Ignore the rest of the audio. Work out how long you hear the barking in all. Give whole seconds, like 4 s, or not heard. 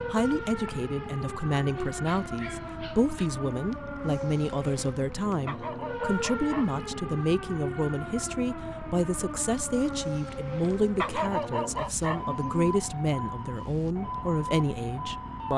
5 s.